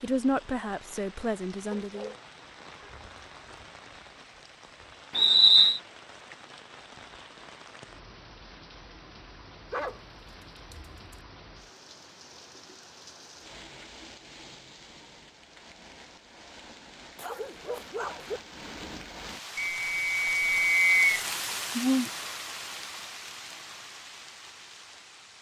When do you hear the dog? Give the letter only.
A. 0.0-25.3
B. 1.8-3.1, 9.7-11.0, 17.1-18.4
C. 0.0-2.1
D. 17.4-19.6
B.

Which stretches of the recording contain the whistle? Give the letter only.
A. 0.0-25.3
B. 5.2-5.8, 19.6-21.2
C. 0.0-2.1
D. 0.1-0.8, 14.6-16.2
B.